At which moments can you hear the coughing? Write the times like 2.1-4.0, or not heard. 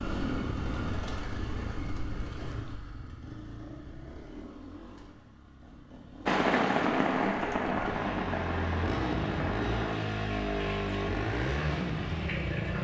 not heard.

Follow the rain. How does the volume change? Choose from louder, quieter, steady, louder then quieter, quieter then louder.
quieter.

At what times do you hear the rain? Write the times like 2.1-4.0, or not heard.
6.2-12.7.